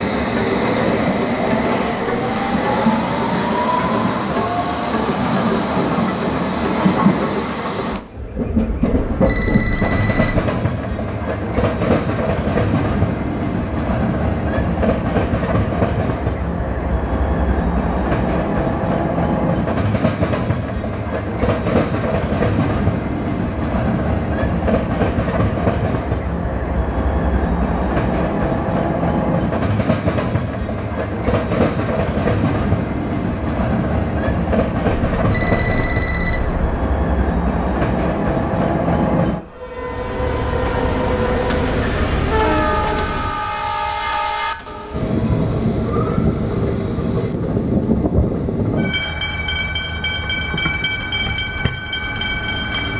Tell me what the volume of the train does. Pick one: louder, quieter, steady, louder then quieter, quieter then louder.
steady.